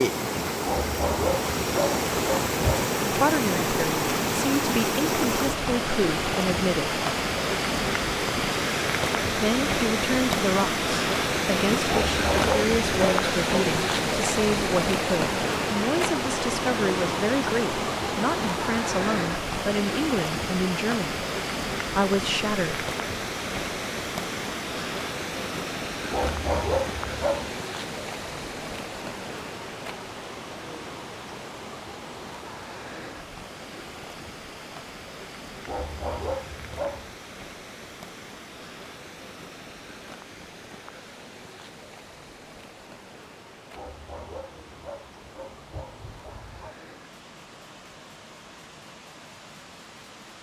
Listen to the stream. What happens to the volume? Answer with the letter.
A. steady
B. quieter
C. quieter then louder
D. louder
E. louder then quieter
B.